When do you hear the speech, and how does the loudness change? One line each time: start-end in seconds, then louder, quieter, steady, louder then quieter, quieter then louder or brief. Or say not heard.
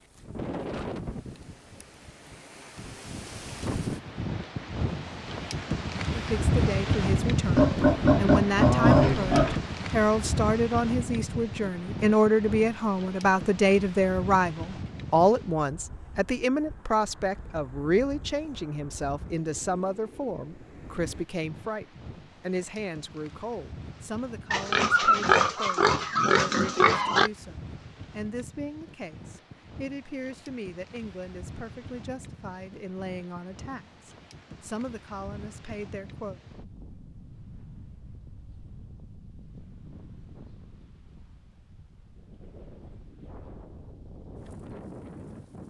6.1-36.4 quieter.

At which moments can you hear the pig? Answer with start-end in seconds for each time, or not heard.
7.5-9.6, 24.5-27.3.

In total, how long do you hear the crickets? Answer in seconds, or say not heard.
not heard.